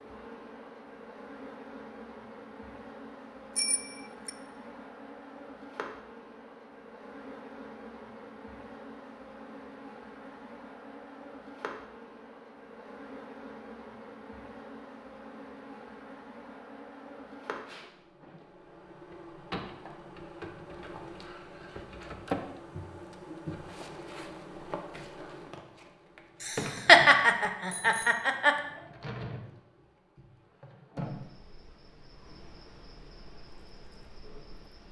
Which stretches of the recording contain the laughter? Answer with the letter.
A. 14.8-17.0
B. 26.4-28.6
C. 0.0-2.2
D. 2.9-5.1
B.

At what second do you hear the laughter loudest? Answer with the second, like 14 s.
27 s.